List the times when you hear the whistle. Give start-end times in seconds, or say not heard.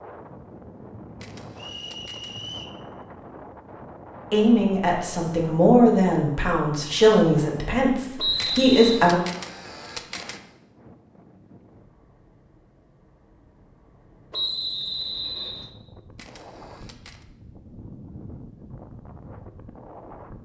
1.6-2.8, 8.2-9.0, 14.3-15.7.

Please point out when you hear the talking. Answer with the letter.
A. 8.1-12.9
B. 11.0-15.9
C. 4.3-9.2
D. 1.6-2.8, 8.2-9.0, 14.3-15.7
C.